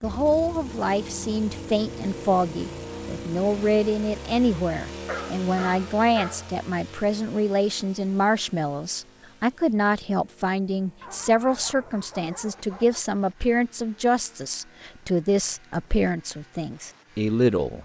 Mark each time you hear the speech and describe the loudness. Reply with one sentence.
The speech can be heard from 0.0 to 17.8 s, at a steady volume.